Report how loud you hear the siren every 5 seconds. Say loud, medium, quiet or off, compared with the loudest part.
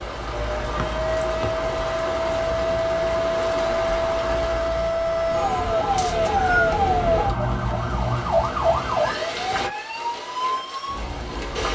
loud, loud, medium.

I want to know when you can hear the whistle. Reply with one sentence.
You can hear the whistle from 0.8 to 1.5 s and from 6.0 to 6.8 s.